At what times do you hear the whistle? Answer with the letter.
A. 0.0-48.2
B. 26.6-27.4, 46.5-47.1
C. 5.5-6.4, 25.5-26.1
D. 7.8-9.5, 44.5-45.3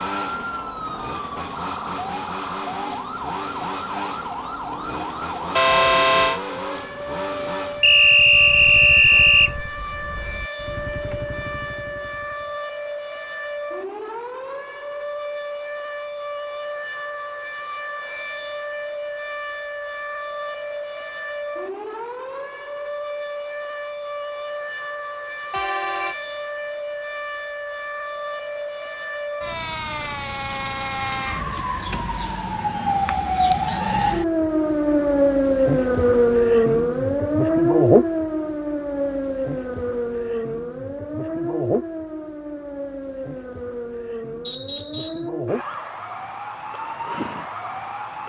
D.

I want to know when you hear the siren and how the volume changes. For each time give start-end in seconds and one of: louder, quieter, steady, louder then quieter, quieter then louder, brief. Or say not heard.
0.0-48.2 louder then quieter.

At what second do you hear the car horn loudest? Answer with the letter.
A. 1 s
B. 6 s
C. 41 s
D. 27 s
B.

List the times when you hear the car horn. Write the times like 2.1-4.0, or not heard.
5.5-6.4, 25.5-26.1.